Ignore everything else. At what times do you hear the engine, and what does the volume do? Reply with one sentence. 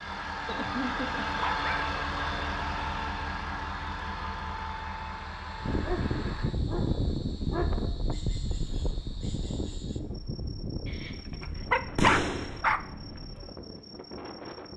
The engine can be heard from 0.0 to 6.5 s, getting quieter.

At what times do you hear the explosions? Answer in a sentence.
The explosions can be heard from 11.9 to 12.6 s.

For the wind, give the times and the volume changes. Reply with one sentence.
You can hear the wind from 5.6 to 14.7 s, getting quieter.